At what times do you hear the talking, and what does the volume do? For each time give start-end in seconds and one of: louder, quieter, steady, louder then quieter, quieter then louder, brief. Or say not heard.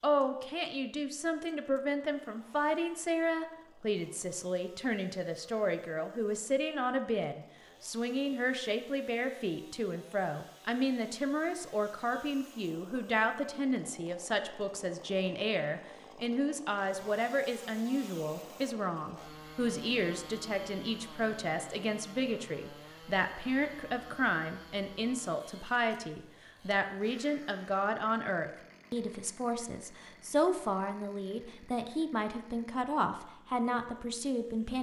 0.0-34.7 steady.